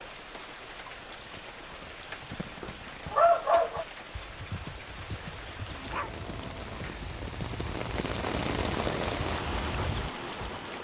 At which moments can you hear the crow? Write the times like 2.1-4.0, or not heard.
not heard.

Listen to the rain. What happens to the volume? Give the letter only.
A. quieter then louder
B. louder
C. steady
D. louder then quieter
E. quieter
B.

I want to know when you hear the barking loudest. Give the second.
3 s.